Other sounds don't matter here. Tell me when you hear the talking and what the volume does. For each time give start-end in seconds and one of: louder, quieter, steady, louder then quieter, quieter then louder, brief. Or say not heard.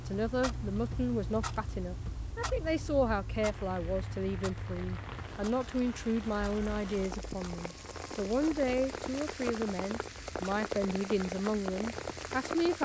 0.1-12.8 steady.